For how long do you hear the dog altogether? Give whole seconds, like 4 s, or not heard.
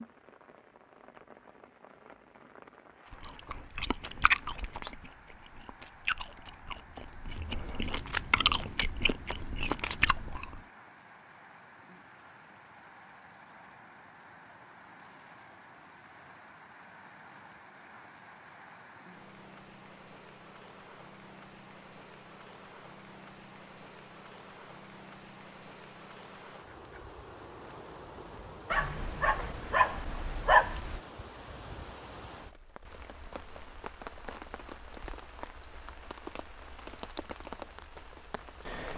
2 s.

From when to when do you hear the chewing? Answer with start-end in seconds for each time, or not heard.
3.1-10.6.